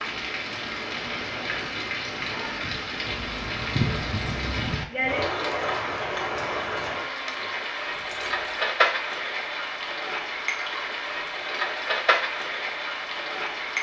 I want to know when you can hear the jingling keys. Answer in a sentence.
The jingling keys can be heard from 3.0 to 4.8 s and from 7.9 to 8.6 s.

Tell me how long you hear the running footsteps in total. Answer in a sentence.
You can't hear the running footsteps here.